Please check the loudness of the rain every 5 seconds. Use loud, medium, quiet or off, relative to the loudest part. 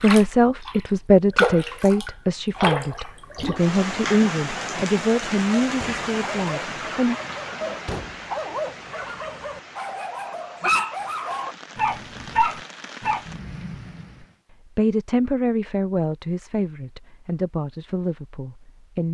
loud, medium, quiet, off.